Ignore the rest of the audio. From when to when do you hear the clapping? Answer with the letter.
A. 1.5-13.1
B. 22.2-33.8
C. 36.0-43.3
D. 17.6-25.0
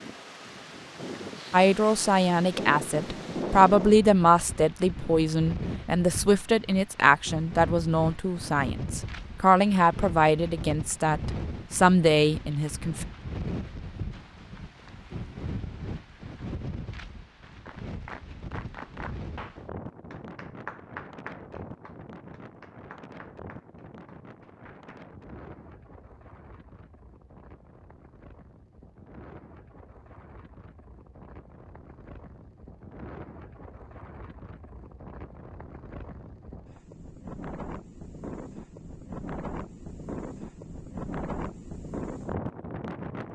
D.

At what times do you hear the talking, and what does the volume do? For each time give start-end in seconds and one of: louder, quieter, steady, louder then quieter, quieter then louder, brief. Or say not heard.
1.5-13.1 steady.